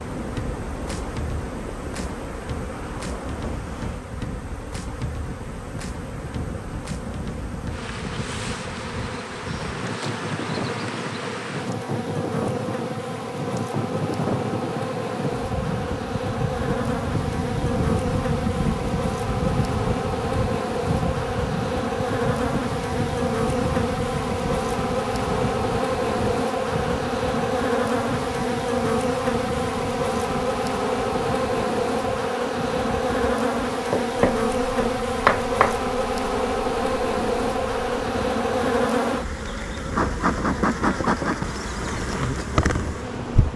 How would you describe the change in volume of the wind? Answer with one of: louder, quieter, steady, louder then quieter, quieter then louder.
louder then quieter.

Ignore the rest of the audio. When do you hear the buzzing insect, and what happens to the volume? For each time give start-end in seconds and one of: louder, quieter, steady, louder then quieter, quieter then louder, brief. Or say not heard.
0.0-43.5 louder.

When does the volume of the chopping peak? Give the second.
35 s.